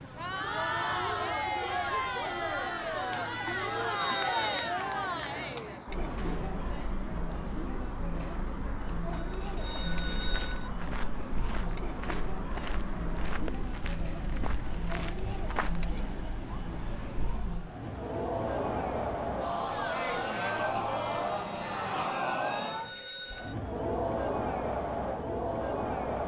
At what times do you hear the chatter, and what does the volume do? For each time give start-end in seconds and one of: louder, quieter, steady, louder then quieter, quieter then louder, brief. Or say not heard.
0.0-26.2 quieter then louder.